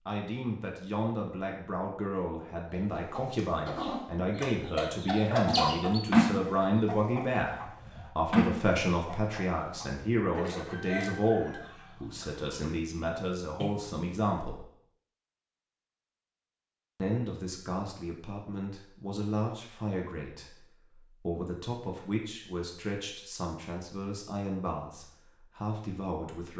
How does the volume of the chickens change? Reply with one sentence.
The loudness of the chickens goes up, then down.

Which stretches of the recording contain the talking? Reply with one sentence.
The talking can be heard from 0.1 to 14.7 s and from 16.9 to 26.5 s.